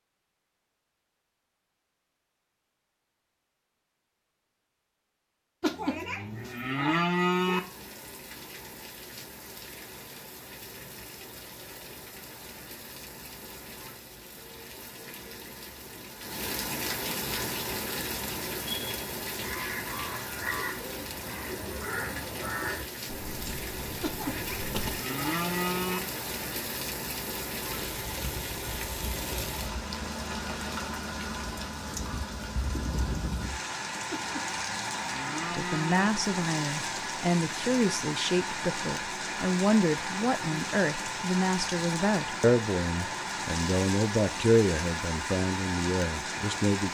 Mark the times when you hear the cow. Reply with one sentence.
You can hear the cow from 5.6 to 7.6 s, from 24.0 to 26.0 s and from 34.1 to 36.1 s.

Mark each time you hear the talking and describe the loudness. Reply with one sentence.
You can hear the talking from 35.5 to 46.8 s, at a steady volume.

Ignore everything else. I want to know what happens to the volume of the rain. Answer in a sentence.
The loudness of the rain goes up.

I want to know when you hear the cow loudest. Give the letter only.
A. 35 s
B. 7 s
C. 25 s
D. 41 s
B.